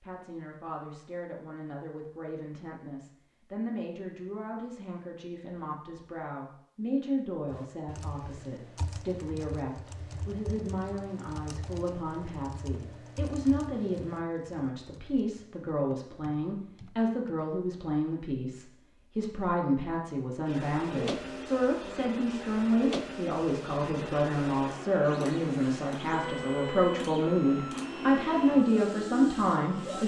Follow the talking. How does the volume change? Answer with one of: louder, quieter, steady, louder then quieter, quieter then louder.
louder.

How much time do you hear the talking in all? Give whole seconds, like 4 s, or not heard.
30 s.